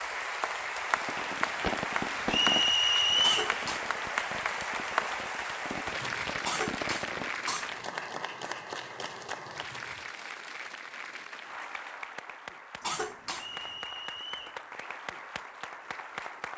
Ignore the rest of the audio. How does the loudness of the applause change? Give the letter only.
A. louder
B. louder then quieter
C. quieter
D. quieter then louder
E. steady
C.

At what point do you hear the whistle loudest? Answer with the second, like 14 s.
3 s.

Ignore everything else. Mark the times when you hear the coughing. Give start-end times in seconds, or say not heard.
3.2-3.9, 6.4-7.8, 12.8-13.7.